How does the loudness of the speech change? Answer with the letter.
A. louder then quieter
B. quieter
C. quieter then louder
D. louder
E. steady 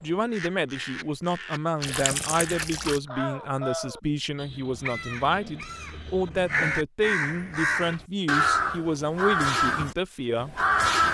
E.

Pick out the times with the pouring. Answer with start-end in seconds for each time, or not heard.
1.8-3.0.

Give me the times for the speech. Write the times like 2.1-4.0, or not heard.
0.0-10.6.